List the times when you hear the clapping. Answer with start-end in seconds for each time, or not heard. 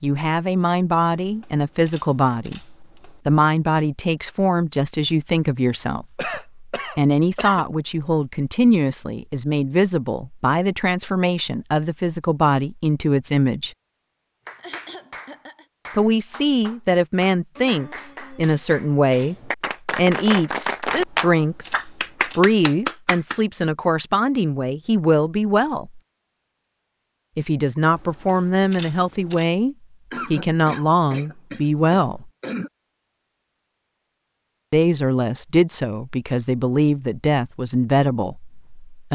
14.4-23.4.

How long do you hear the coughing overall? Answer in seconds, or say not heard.
5 s.